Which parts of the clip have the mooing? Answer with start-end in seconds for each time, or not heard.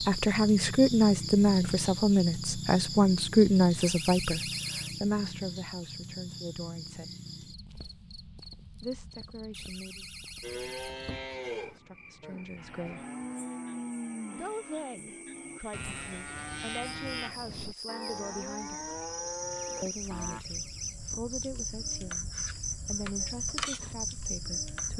10.4-20.4.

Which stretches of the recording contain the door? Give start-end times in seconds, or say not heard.
3.8-5.0, 9.5-11.3, 19.6-21.2.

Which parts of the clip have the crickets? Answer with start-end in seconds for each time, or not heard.
0.0-24.9.